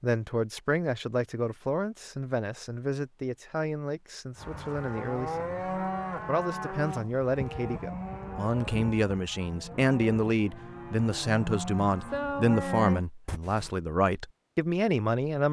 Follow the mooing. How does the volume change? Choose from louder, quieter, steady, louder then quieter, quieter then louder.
quieter then louder.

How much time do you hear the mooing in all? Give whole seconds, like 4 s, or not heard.
9 s.